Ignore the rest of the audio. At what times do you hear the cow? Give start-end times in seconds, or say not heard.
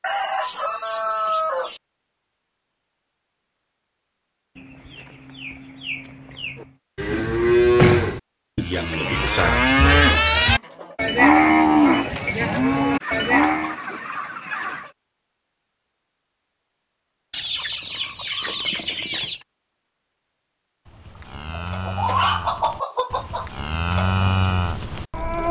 6.6-13.8, 20.9-25.4.